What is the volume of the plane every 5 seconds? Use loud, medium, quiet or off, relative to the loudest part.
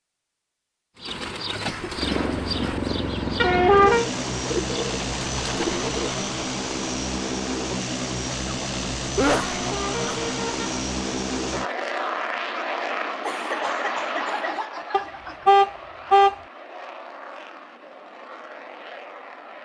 loud, loud, loud, quiet.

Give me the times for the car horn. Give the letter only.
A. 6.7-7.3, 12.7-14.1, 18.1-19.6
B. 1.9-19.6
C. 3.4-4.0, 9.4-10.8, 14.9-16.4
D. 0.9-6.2
C.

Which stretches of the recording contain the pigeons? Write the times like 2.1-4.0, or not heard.
0.9-6.2.